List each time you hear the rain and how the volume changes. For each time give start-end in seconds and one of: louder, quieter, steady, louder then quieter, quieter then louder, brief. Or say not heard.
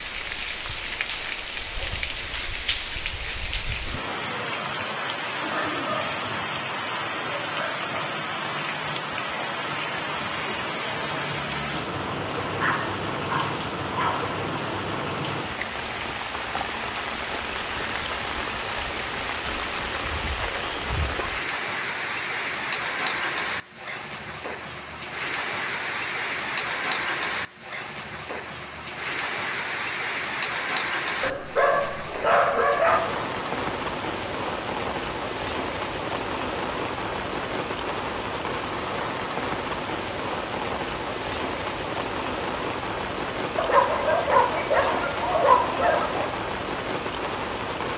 0.0-47.9 steady.